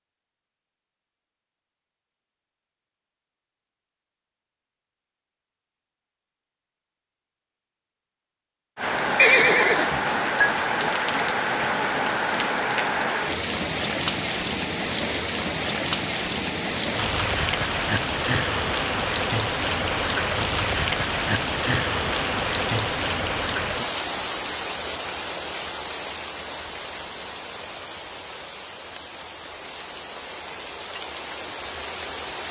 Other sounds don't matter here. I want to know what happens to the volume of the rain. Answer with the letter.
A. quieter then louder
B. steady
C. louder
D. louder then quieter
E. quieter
E.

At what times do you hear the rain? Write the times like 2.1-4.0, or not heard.
8.8-32.4.